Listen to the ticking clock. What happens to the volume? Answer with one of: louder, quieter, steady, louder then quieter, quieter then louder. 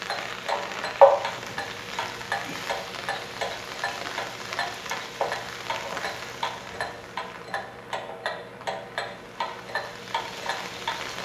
quieter.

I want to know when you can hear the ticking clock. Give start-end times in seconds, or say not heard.
0.0-11.2.